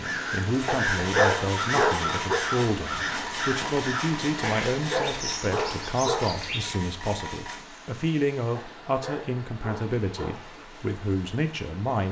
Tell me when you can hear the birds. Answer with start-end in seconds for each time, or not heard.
0.0-6.8.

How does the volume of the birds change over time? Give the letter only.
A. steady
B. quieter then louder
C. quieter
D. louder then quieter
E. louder
C.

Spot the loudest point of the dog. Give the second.
1 s.